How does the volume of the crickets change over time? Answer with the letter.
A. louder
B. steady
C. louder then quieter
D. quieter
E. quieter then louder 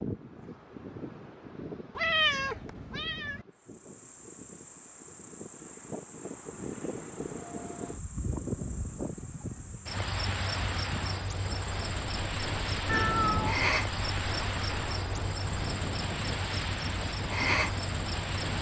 A.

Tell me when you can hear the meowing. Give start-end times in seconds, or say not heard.
1.9-3.5, 12.8-13.6.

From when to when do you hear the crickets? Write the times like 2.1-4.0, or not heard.
3.5-18.5.